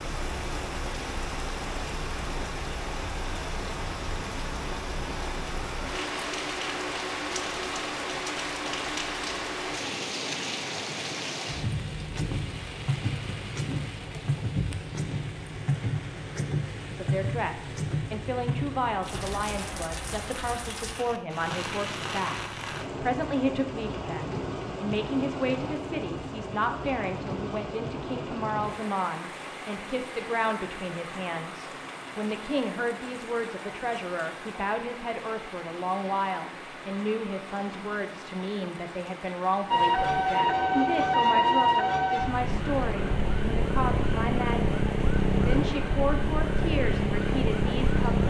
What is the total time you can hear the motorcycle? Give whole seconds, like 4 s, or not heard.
not heard.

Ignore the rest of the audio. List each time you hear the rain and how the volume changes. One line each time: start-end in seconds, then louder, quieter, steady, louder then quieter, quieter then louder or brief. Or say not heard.
0.0-48.2 quieter.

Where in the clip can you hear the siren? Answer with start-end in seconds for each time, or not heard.
39.7-48.2.